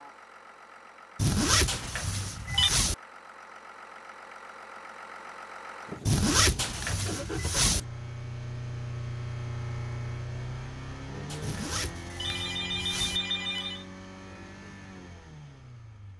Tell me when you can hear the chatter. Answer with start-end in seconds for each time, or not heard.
not heard.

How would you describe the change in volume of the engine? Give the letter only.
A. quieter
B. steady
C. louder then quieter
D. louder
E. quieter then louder
C.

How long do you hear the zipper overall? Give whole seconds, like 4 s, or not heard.
5 s.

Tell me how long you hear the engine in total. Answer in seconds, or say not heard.
16 s.